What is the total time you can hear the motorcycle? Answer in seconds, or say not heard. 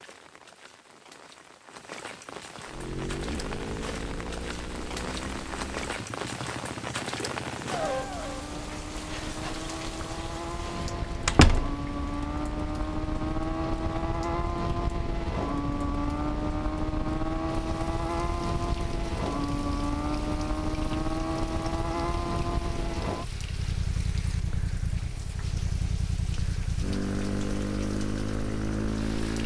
27 s.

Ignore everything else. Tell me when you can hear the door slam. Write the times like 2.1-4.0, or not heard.
11.2-11.8.